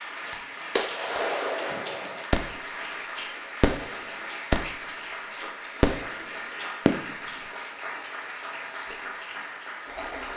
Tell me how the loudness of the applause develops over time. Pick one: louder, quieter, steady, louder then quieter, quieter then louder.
steady.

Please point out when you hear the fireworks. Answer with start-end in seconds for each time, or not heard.
0.8-2.5, 3.6-4.7, 5.8-7.2.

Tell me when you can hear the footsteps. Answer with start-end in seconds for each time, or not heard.
not heard.